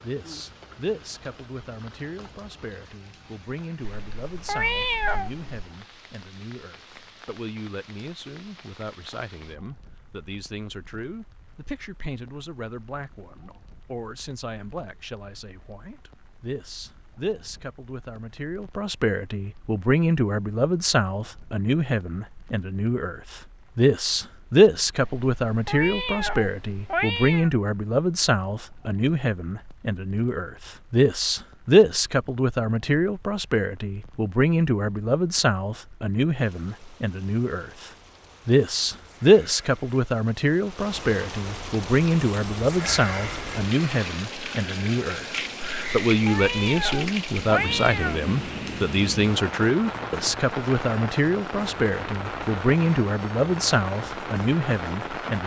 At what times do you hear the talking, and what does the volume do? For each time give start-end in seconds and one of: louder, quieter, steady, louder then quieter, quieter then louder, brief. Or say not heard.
0.0-55.4 louder.